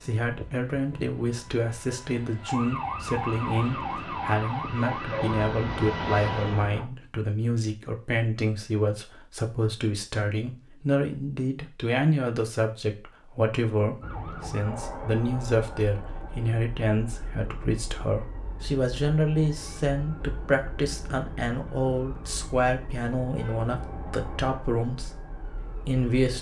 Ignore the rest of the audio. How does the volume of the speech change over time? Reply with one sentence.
The loudness of the speech stays about the same.